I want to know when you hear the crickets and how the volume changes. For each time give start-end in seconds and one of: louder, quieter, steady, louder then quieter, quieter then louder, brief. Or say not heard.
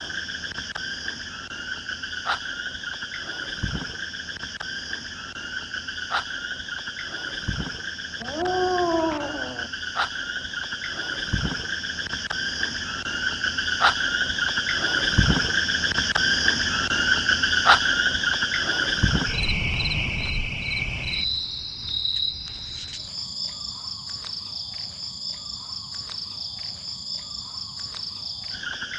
0.0-28.9 louder then quieter.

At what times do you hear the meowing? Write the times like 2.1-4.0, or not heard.
8.2-9.7.